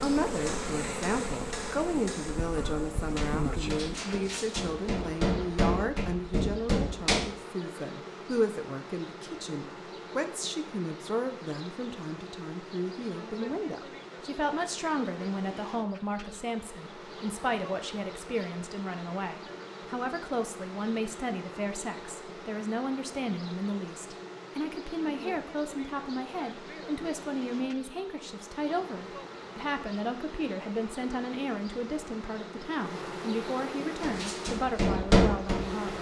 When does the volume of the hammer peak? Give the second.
35 s.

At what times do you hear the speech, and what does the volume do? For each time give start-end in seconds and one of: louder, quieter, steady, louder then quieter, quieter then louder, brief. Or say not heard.
0.0-35.9 steady.